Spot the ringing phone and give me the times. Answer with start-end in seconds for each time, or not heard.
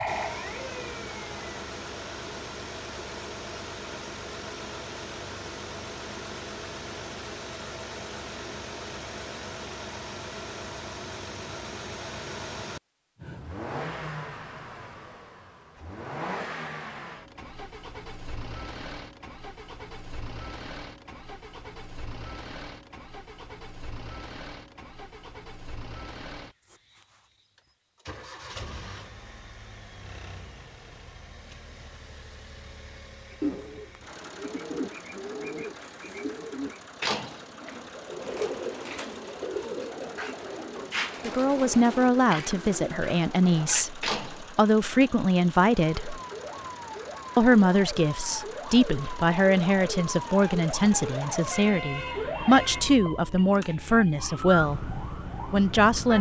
not heard.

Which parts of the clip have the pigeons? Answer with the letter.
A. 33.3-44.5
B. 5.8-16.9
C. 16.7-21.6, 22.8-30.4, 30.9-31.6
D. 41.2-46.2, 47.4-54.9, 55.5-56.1
A.